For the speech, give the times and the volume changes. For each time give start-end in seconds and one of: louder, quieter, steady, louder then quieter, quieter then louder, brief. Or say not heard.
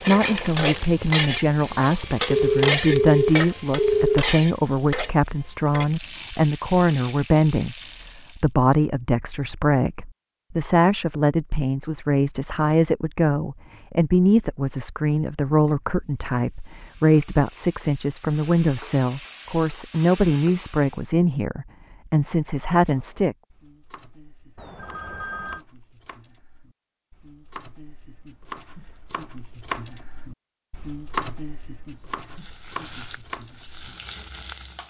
0.1-23.4 steady.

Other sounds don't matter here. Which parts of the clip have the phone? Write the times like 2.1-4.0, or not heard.
2.3-4.2, 24.6-25.6.